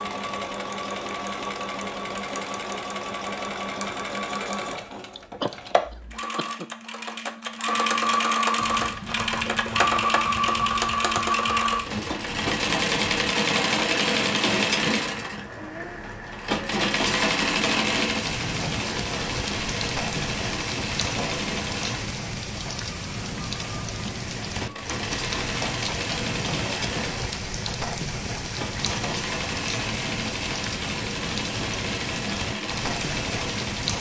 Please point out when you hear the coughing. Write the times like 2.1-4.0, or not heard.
5.2-6.7.